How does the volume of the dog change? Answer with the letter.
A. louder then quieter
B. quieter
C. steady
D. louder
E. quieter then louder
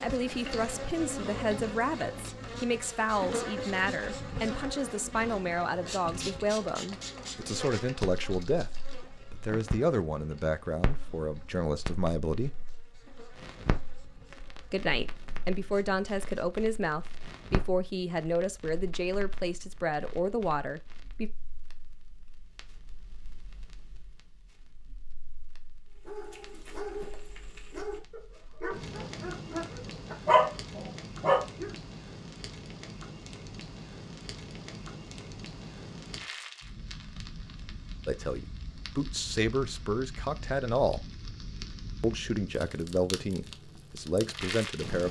D.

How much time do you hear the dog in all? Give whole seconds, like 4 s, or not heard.
6 s.